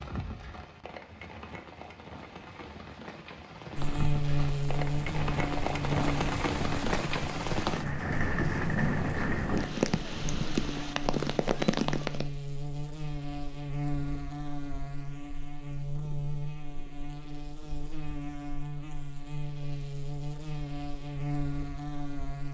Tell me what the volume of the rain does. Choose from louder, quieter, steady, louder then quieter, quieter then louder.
louder.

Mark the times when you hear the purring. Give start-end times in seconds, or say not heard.
not heard.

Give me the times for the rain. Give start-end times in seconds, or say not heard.
0.0-12.2.